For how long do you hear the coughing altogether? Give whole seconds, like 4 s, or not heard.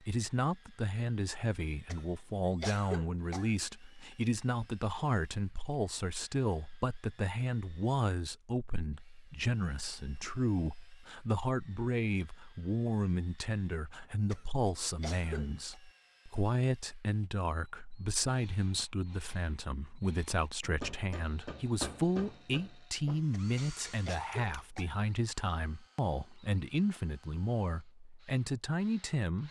5 s.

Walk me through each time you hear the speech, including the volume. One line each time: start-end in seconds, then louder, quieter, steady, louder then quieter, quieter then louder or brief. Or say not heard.
0.0-29.4 steady.